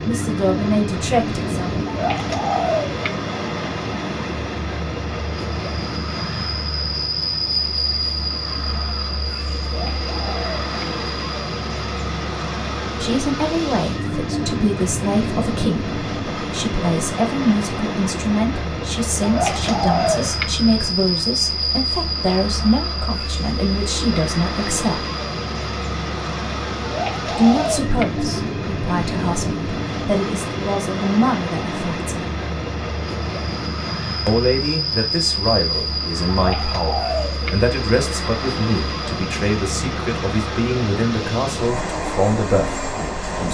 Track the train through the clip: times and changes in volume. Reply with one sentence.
The train can be heard from 0.0 to 43.4 s, at a steady volume.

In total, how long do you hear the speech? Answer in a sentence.
The speech can be heard for 28 seconds in total.